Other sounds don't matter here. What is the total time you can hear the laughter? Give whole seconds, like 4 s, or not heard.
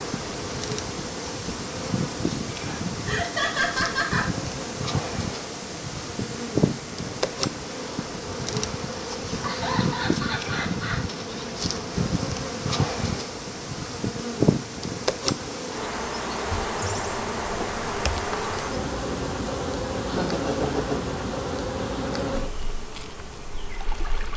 4 s.